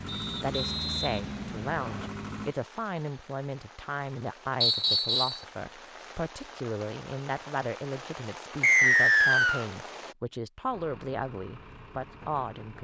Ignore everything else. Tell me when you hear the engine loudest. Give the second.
1 s.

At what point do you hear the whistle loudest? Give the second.
9 s.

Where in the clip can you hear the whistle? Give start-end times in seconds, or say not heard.
0.1-2.1, 4.6-5.4, 8.6-9.7.